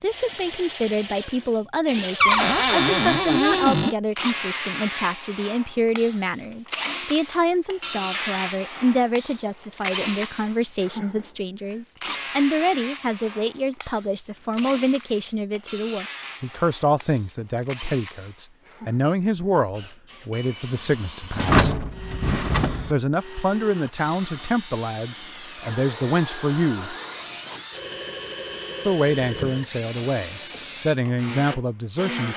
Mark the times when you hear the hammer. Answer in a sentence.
The hammer can't be heard in this clip.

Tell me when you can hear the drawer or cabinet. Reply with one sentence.
The drawer or cabinet can be heard from 2.2 to 4.0 s and from 21.4 to 22.9 s.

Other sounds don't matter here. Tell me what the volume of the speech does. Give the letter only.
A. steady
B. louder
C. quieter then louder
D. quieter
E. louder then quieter
A.